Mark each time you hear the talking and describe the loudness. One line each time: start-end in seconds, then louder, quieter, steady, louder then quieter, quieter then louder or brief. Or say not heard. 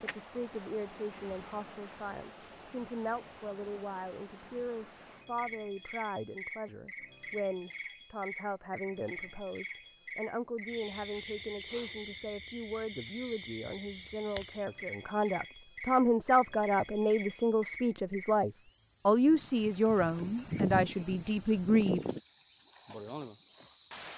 0.0-22.0 louder.